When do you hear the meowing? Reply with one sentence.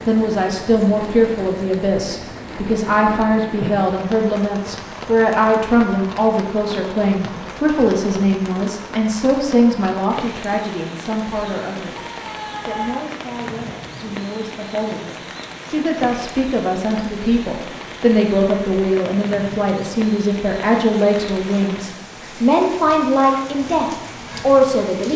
The meowing can be heard from 11.9 to 13.1 s.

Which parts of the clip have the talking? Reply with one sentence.
The talking can be heard from 0.1 to 12.0 s and from 12.7 to 25.1 s.